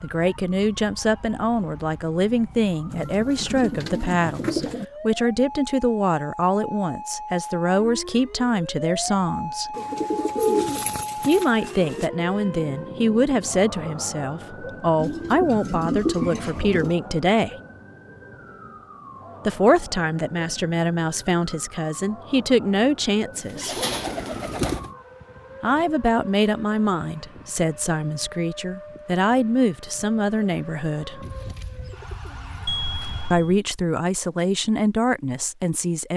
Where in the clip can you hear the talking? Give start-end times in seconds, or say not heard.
0.0-9.8, 11.2-17.6, 19.4-23.8, 25.6-31.2, 33.3-36.1.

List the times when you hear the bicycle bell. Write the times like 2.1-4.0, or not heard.
32.6-33.6.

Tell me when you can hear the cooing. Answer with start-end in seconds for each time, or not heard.
2.9-4.8, 9.8-12.1, 14.9-16.9, 23.4-24.9, 31.2-33.2.